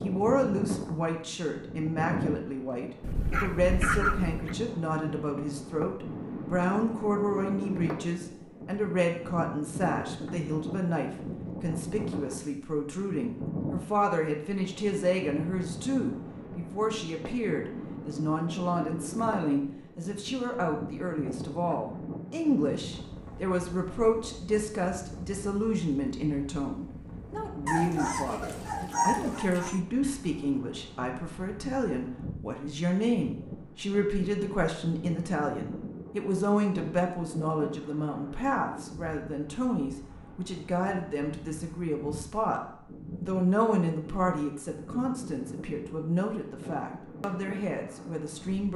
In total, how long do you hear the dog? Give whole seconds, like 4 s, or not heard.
4 s.